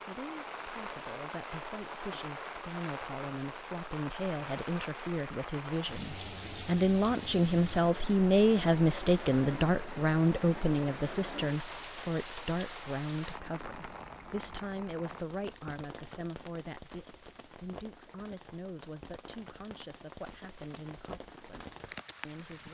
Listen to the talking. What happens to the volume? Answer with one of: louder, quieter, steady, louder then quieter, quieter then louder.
louder then quieter.